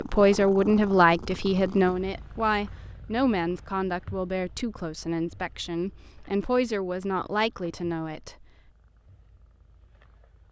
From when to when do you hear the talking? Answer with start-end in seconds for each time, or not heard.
0.0-8.4.